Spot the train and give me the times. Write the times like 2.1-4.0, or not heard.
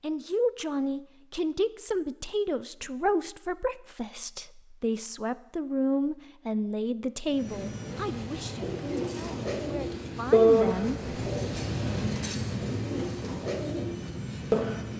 7.2-14.9.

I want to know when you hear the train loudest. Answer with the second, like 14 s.
12 s.